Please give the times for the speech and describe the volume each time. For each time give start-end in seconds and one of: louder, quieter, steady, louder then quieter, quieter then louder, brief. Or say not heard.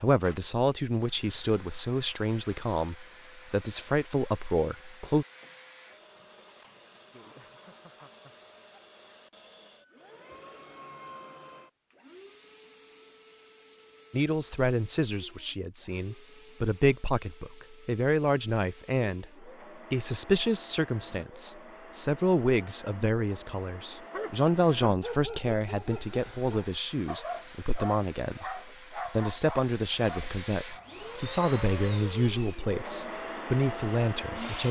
0.0-5.2 steady
14.1-34.6 steady.